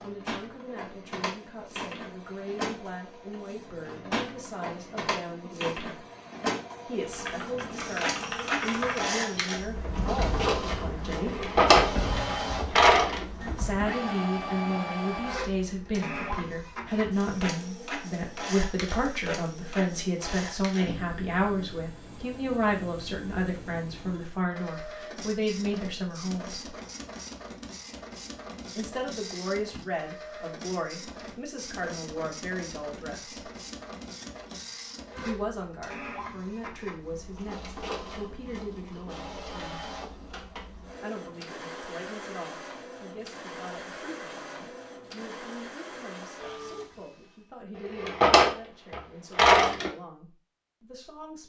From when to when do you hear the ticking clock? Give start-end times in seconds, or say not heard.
not heard.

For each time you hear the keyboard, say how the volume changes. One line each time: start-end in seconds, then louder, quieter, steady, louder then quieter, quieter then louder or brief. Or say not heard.
7.0-13.9 quieter.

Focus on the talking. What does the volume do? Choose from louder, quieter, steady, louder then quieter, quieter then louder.
louder then quieter.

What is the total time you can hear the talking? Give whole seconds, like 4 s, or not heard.
44 s.